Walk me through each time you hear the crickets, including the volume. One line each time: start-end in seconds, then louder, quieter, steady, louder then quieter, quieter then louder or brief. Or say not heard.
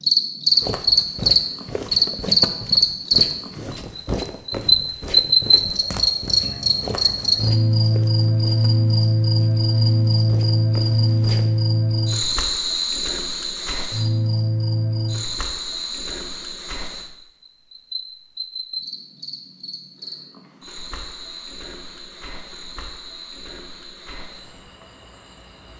0.0-25.7 quieter.